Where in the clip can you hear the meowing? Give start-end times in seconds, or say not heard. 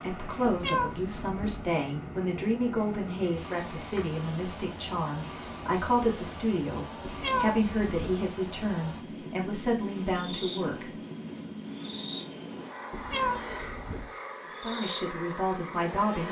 0.5-1.6, 7.0-8.2, 12.9-14.1.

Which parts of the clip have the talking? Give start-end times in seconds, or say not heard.
0.0-10.9, 14.5-16.2.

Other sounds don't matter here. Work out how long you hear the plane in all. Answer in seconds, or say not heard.
16 s.